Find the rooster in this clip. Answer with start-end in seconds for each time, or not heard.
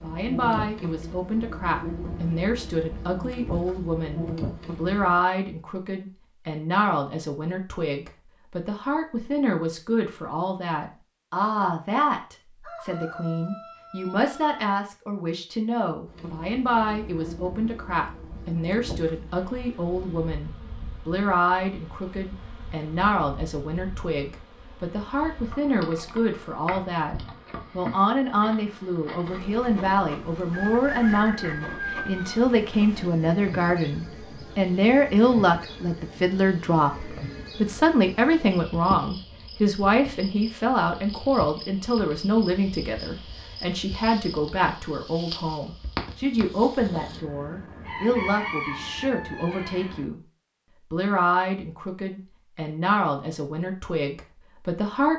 12.6-14.6, 30.5-32.5, 46.8-50.0.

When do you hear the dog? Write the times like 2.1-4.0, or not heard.
not heard.